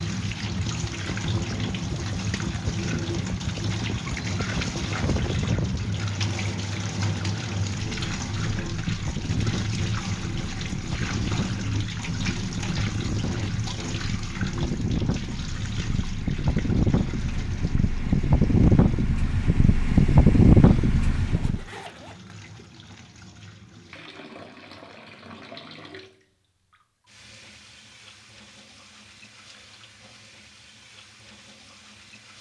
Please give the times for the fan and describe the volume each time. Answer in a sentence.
You can hear the fan from 0.1 to 21.6 s, getting louder.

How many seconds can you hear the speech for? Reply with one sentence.
The speech can't be heard in this clip.